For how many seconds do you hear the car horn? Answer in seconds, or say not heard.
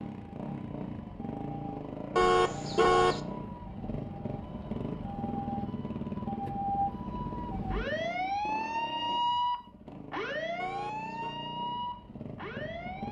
2 s.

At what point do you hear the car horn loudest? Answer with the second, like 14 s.
3 s.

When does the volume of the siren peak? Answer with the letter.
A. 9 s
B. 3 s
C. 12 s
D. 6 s
A.